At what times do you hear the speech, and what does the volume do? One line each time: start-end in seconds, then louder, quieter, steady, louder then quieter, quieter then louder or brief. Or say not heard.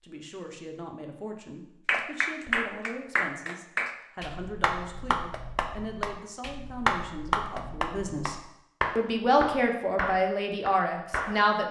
0.0-11.6 louder.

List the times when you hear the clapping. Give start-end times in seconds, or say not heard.
1.9-11.4.